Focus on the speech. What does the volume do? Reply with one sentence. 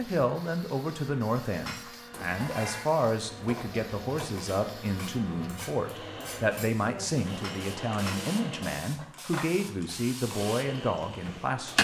The volume of the speech stays about the same.